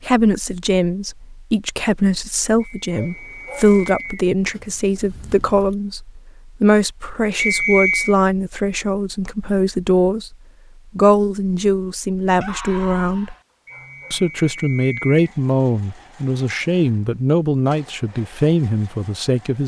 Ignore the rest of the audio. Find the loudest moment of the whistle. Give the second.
8 s.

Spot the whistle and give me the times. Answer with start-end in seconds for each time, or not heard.
2.6-4.2, 7.3-8.2, 13.7-15.3.